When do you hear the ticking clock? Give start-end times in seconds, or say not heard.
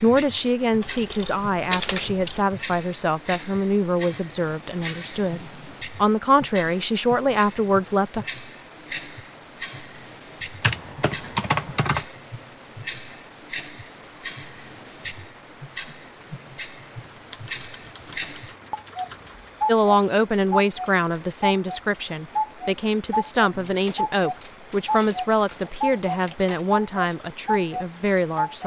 0.0-28.6.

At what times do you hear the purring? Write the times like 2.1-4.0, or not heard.
not heard.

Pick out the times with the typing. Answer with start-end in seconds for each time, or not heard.
0.8-2.5, 10.6-12.1, 17.1-19.4, 23.5-26.4.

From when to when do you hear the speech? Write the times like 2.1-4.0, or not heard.
0.0-8.2, 19.6-28.6.